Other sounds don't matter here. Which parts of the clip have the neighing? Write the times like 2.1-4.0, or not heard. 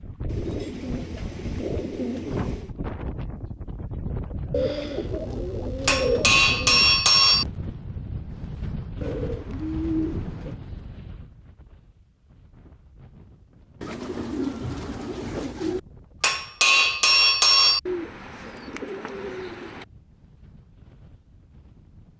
not heard.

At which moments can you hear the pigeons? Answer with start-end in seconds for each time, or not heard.
0.2-2.7, 4.5-6.9, 9.0-10.6, 13.8-15.8, 17.9-19.9.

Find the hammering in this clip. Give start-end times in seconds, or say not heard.
5.8-7.5, 16.2-17.8.